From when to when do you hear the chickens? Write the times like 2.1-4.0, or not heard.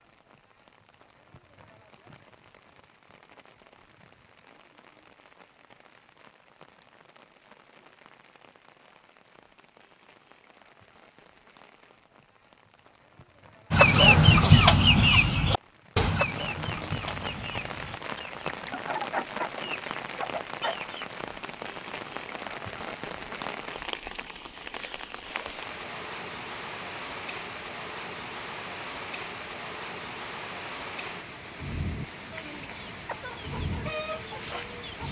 13.7-21.1, 32.3-35.0.